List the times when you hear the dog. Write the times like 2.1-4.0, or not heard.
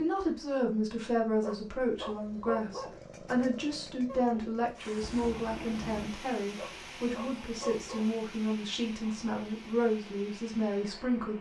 1.4-3.0, 6.5-8.2.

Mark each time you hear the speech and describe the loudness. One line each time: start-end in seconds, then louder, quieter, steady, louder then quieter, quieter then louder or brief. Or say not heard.
0.0-11.3 steady.